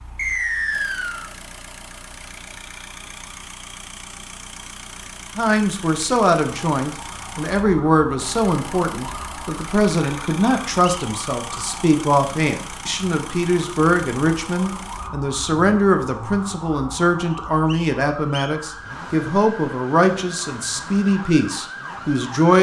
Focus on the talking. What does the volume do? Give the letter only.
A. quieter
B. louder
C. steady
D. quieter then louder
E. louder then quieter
C.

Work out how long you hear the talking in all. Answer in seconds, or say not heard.
17 s.